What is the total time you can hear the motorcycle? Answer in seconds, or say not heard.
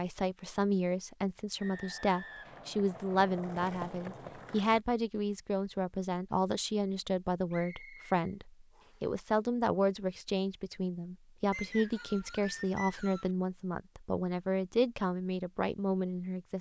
not heard.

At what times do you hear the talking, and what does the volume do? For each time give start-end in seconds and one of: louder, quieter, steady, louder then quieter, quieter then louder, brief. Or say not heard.
0.0-16.5 steady.